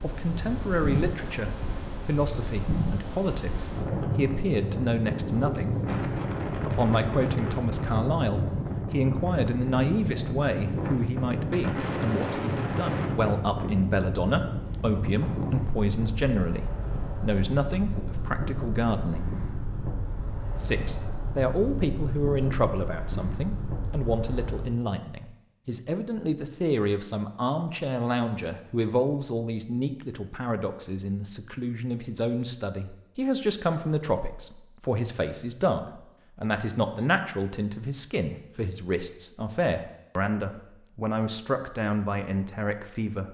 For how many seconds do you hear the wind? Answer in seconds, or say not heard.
25 s.